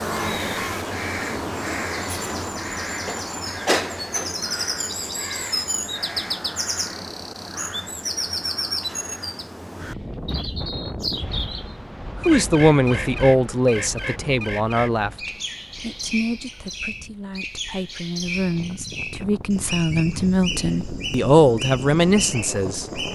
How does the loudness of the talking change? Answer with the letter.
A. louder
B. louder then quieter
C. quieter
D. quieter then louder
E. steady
D.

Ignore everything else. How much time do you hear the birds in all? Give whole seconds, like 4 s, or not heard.
23 s.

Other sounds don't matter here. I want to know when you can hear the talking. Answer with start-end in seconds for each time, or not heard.
12.2-22.9.